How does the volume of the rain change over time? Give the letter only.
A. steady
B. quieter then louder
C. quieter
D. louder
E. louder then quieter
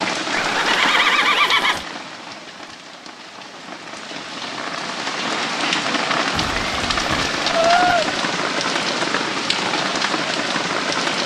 B.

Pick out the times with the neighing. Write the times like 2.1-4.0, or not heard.
0.3-1.9, 6.3-8.2.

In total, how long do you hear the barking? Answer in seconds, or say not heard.
not heard.